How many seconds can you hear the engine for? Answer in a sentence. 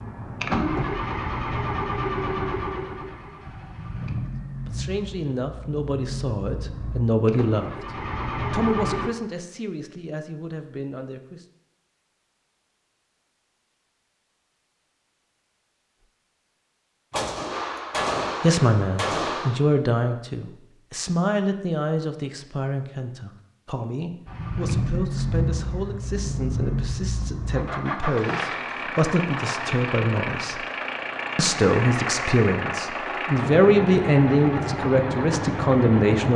The engine can be heard for 21 seconds in total.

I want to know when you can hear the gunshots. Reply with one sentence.
The gunshots can be heard from 17.1 to 19.6 s.